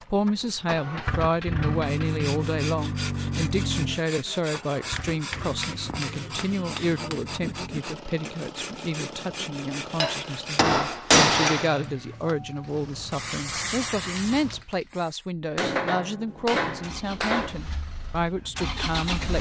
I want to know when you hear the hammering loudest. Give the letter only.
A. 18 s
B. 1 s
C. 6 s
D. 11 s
D.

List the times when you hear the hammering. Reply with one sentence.
The hammering can be heard from 0.5 to 2.2 s, from 5.0 to 7.2 s, from 10.0 to 11.9 s and from 15.6 to 17.6 s.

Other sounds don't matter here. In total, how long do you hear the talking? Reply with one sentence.
You can hear the talking for 19 seconds altogether.